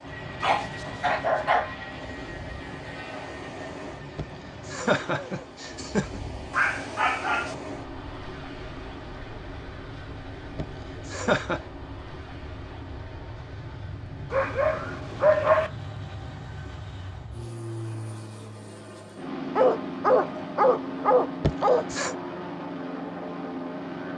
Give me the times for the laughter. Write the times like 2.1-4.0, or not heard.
4.2-6.2, 10.6-11.6, 21.4-22.1.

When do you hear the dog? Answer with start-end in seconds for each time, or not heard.
0.4-1.8, 6.5-7.5, 14.3-15.7, 19.6-21.9.